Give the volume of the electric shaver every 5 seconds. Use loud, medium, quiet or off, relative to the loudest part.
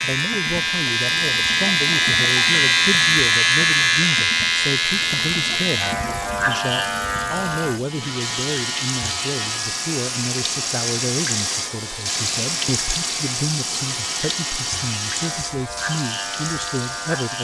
loud, medium, quiet, quiet.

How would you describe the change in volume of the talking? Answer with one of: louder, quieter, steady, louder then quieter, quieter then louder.
steady.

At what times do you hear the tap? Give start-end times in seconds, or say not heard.
0.0-17.3.